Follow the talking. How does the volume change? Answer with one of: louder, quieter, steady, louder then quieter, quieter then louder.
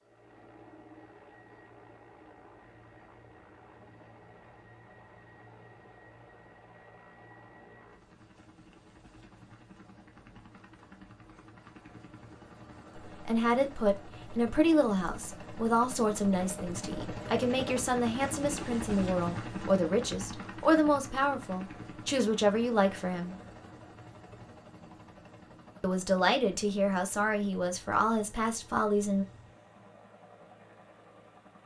steady.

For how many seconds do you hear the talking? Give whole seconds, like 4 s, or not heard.
14 s.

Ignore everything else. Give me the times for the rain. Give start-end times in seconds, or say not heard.
not heard.